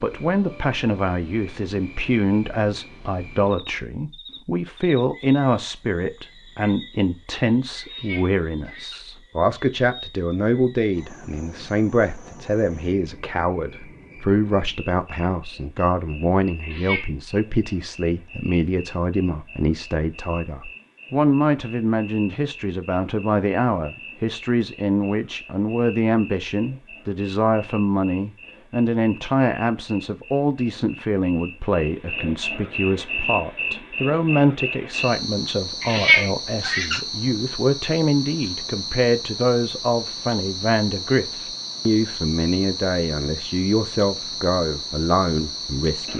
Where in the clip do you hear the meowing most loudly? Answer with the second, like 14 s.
36 s.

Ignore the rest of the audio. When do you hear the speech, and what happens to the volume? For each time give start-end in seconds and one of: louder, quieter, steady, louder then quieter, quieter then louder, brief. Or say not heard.
0.0-46.1 steady.